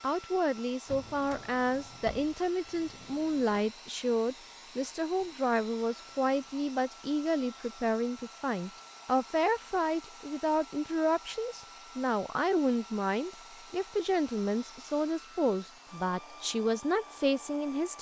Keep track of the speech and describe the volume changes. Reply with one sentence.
The loudness of the speech stays about the same.